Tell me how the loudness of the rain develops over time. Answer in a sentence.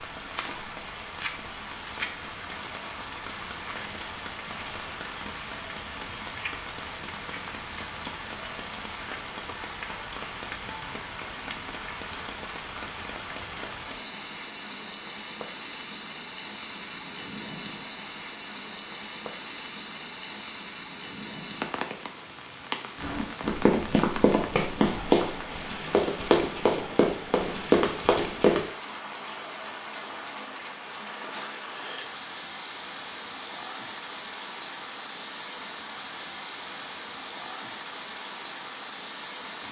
The volume of the rain stays about the same.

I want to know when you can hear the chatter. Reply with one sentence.
The chatter can't be heard in this clip.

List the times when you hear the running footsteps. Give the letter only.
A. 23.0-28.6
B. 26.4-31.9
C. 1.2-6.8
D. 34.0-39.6
A.